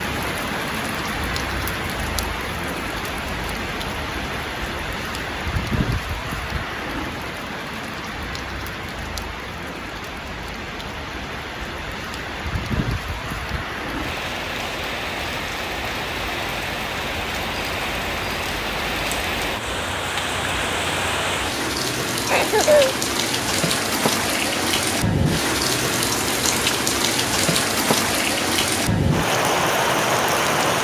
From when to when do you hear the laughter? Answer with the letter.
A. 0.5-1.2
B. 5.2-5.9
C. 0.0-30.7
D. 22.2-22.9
D.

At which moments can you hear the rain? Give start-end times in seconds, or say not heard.
0.0-30.7.